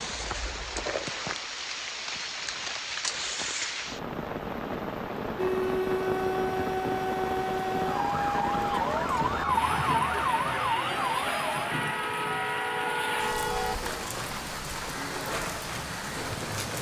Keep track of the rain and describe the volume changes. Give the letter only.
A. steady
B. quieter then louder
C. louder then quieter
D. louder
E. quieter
A.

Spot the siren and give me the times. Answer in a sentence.
The siren can be heard from 5.3 to 13.8 s.